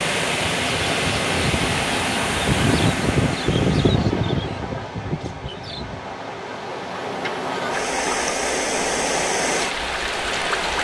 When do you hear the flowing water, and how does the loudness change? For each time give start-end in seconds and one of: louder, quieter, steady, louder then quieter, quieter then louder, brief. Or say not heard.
0.0-10.7 quieter then louder.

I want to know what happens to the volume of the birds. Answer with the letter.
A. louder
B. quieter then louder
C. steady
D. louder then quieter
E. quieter
D.